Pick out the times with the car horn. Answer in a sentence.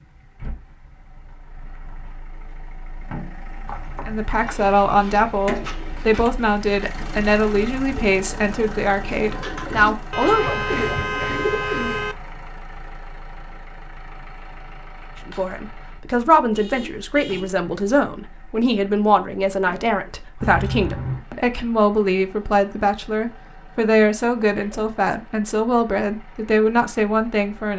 The car horn can be heard from 10.1 to 12.2 s and from 16.5 to 17.6 s.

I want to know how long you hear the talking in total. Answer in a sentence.
The talking can be heard for 19 seconds in total.